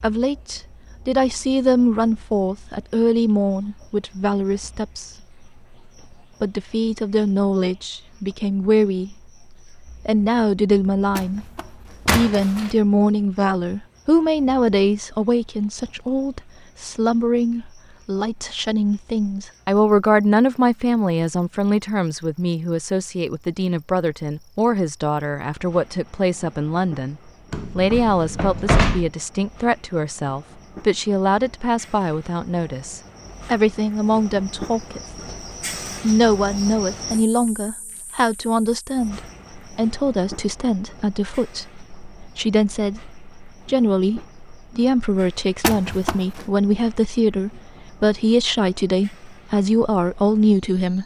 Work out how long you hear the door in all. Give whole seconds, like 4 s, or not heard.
4 s.